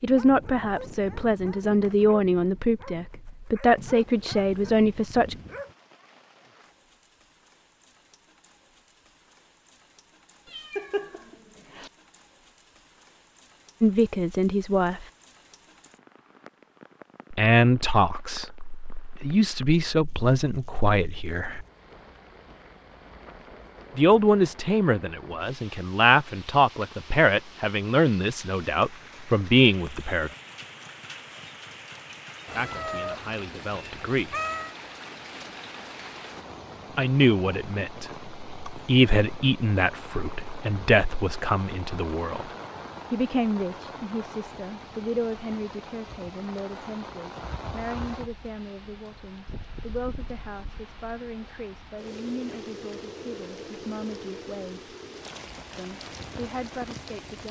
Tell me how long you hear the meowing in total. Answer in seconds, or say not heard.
4 s.